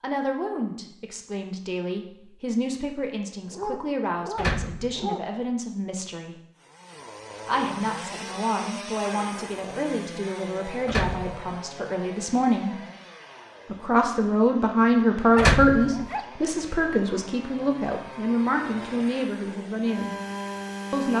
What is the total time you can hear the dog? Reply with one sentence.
The dog can be heard for 3 seconds in total.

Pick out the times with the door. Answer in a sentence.
The door can be heard from 4.3 to 5.1 s, from 10.8 to 11.6 s and from 15.3 to 16.1 s.